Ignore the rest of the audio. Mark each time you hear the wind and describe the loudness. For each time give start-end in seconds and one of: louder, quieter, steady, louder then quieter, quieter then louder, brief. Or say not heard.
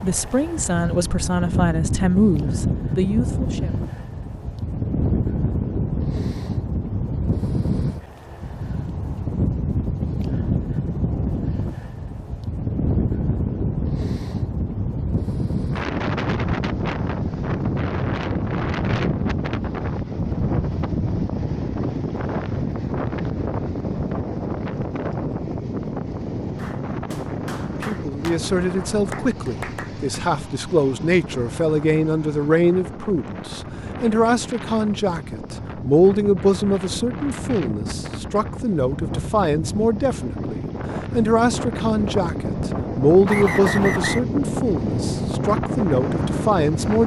0.0-47.0 quieter then louder.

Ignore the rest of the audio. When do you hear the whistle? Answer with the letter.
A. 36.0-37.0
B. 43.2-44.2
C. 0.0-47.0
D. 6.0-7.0
B.